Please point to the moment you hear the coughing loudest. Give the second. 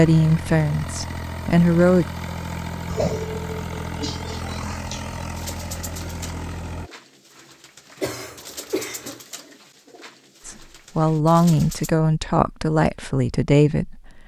3 s.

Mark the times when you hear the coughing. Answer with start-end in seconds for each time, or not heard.
2.9-5.2, 8.0-9.2.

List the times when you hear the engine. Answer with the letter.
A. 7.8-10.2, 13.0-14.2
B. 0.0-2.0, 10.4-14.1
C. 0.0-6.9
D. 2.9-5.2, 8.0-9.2
C.